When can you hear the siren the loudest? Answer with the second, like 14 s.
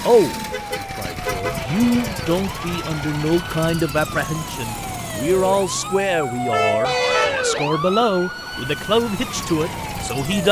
7 s.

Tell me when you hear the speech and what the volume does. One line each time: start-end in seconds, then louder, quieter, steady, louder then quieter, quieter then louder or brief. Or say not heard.
0.0-10.4 steady.